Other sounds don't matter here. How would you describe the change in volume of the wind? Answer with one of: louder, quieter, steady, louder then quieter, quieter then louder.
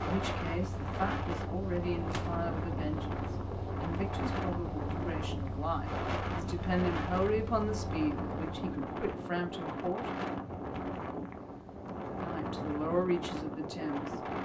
steady.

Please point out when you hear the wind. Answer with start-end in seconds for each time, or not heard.
0.0-14.4.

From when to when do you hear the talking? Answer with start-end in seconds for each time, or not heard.
0.0-10.1, 12.1-14.1.